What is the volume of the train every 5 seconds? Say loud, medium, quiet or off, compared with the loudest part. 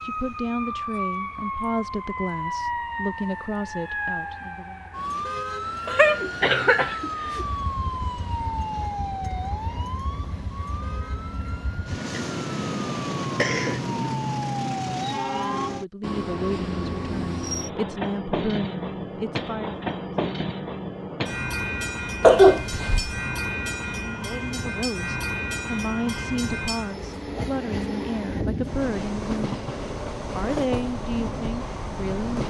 quiet, medium, loud, loud, loud, loud, loud.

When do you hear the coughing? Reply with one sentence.
The coughing can be heard from 5.8 to 7.5 s, from 12.1 to 14.2 s and from 22.2 to 23.1 s.